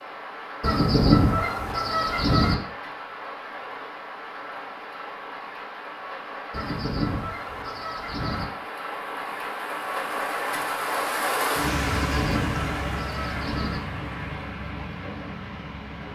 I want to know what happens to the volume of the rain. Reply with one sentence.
The volume of the rain goes up, then down.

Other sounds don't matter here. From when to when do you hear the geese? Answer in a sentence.
The geese can be heard from 0.6 to 2.5 s, from 6.5 to 8.4 s and from 11.8 to 13.8 s.